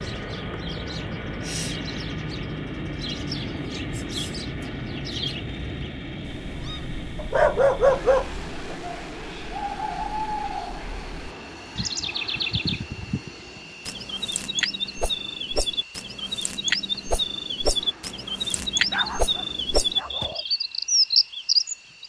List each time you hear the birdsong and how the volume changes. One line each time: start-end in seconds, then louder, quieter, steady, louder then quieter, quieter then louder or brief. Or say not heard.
0.0-22.0 louder.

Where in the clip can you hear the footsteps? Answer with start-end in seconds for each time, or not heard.
not heard.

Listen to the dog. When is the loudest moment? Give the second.
8 s.